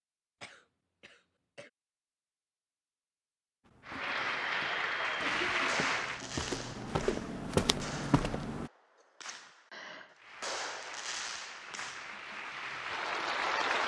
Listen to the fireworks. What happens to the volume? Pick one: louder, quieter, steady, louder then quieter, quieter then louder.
quieter then louder.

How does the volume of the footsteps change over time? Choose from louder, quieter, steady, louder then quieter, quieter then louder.
quieter then louder.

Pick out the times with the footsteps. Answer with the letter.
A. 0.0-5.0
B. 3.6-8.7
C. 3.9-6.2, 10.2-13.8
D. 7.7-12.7
B.